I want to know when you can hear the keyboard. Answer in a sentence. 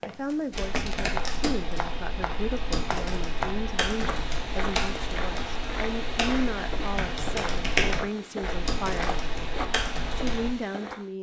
The keyboard can be heard from 0.5 to 10.5 s.